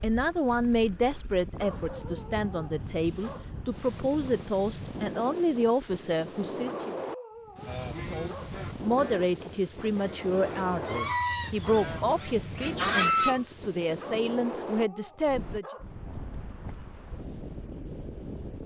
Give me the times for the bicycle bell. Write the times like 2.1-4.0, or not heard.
not heard.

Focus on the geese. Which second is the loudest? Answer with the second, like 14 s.
13 s.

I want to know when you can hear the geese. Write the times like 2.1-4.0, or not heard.
7.7-13.4.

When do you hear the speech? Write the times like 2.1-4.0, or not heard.
0.0-7.0, 8.1-15.7.